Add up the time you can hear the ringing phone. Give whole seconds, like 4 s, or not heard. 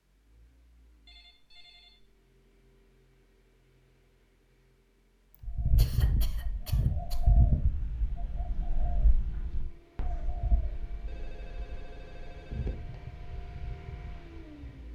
3 s.